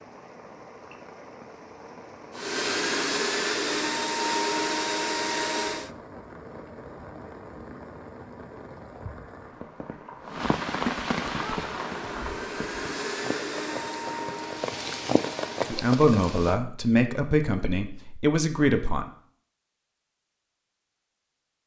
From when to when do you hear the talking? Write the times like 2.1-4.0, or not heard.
15.7-19.1.